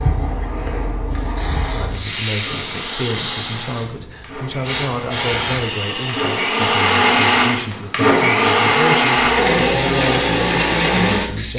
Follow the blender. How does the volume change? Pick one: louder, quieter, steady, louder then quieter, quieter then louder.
louder.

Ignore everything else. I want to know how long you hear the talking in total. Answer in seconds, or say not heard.
10 s.